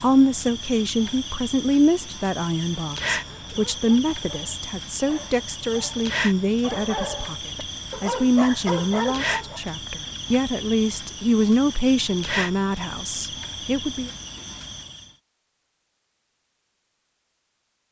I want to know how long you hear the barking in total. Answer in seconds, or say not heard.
6 s.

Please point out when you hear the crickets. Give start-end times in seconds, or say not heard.
0.0-15.2.